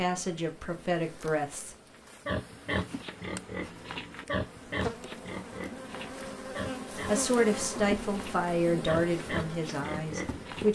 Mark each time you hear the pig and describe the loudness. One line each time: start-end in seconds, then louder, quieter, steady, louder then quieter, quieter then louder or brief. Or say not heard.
2.2-10.6 quieter then louder.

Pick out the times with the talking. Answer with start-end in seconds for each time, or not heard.
0.0-1.8, 7.0-10.6.